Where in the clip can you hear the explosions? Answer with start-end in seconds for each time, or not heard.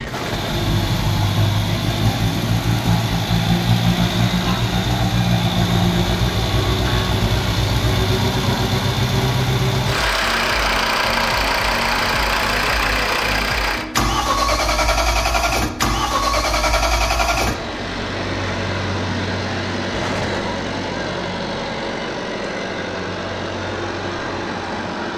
0.0-0.7, 19.9-20.6.